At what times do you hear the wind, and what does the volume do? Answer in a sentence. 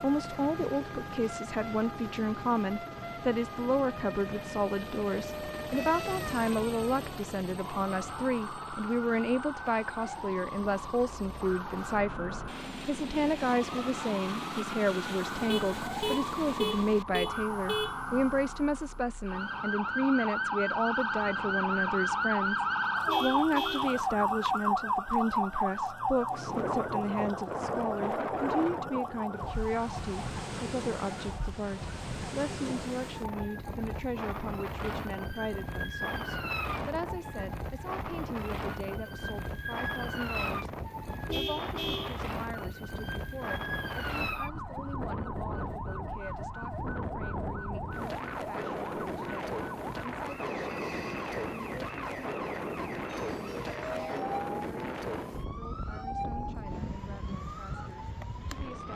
You can hear the wind from 26.3 to 58.9 s, at a steady volume.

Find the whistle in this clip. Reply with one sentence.
You can't hear the whistle here.